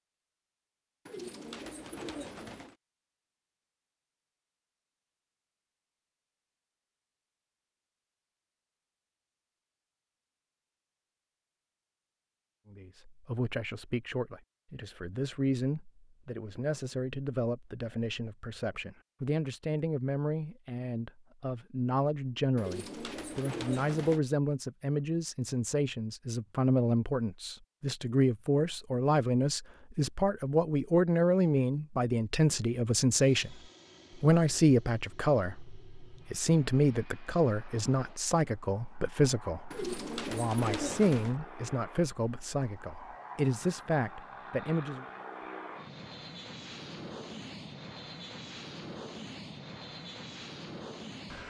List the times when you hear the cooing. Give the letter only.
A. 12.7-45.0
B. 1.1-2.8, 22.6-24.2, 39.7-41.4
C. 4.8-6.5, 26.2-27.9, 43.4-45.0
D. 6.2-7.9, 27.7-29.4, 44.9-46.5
B.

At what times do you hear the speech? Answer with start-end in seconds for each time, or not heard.
12.7-45.0.